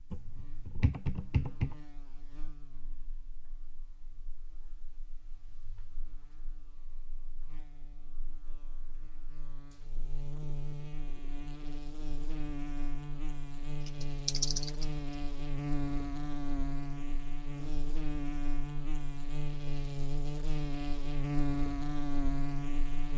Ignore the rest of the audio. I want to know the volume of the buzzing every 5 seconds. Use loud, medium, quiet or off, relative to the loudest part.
quiet, quiet, medium, loud, loud.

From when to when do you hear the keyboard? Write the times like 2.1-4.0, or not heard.
0.1-1.8, 14.0-14.9.